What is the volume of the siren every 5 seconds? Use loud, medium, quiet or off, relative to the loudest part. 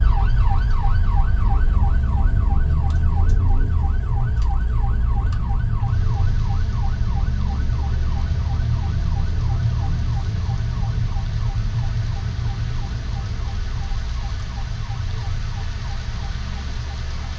loud, loud, loud, medium.